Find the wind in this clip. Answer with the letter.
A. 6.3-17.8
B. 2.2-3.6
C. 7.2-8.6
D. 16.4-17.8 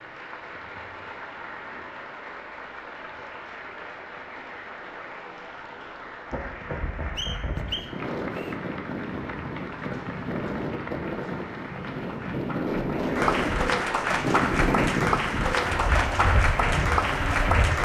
A.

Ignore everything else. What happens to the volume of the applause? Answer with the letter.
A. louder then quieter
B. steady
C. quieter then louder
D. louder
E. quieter
D.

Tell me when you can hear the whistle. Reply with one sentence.
The whistle can be heard from 7.2 to 8.6 s.